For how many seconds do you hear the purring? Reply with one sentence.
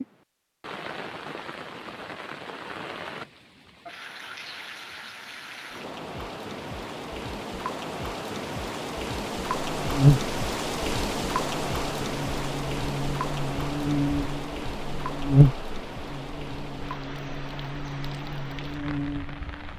The purring can't be heard in this clip.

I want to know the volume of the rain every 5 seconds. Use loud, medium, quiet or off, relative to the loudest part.
medium, loud, loud, medium.